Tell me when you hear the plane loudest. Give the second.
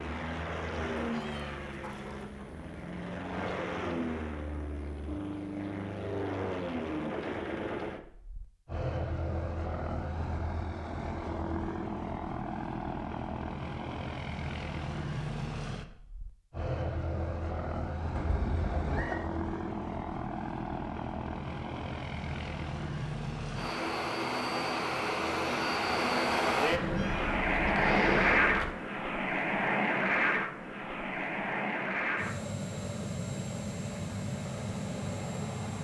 28 s.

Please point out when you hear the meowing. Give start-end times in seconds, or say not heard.
1.1-2.8, 18.1-19.2, 26.7-28.8.